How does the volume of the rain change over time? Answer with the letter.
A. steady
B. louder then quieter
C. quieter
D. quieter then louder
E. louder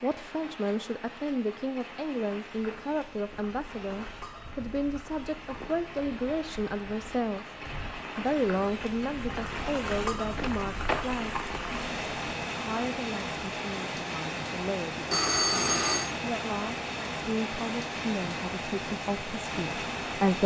E.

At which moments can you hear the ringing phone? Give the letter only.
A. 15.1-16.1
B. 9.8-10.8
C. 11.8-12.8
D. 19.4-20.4
A.